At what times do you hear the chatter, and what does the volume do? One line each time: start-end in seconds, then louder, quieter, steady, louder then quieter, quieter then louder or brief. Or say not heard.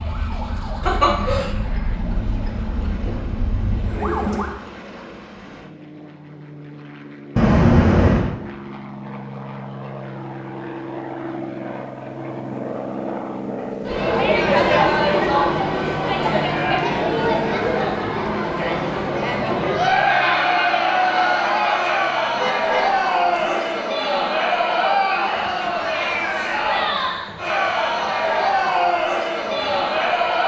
13.8-30.4 steady.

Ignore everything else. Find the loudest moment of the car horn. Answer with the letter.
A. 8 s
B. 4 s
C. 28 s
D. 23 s
A.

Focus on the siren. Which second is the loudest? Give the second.
4 s.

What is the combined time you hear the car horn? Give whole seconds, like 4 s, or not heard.
2 s.